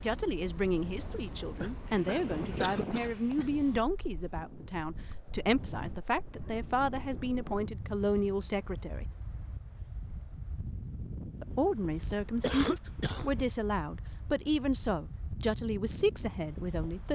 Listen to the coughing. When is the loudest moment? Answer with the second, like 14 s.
13 s.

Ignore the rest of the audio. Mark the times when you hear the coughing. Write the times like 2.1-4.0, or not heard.
1.6-3.5, 12.4-13.3.